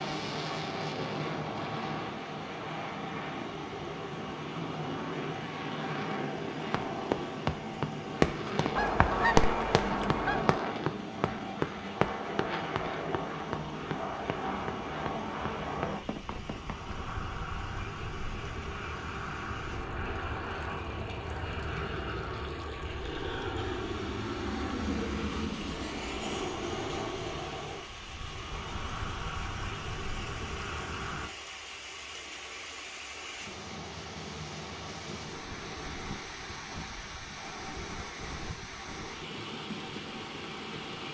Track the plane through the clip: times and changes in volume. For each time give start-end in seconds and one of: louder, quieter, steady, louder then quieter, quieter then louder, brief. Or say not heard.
0.0-31.3 steady.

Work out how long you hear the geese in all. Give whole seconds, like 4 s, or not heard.
2 s.